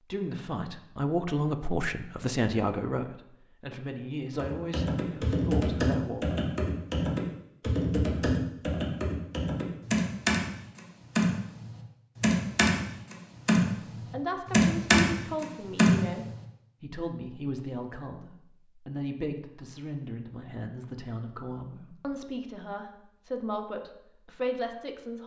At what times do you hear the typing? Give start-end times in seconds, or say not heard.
4.4-16.3.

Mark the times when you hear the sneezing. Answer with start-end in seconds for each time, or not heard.
not heard.